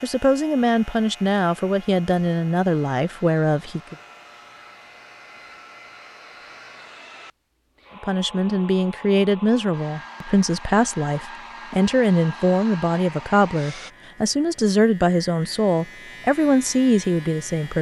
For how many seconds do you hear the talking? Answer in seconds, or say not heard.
14 s.